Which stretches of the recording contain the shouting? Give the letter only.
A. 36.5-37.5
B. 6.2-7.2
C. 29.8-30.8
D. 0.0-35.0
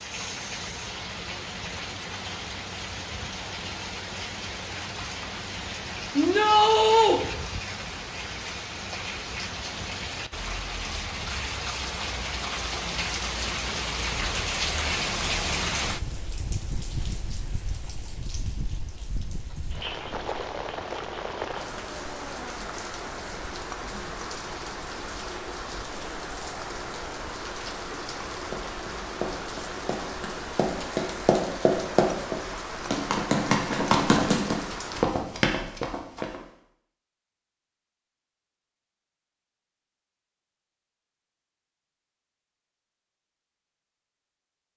B.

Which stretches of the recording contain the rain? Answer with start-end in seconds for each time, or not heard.
0.0-35.0.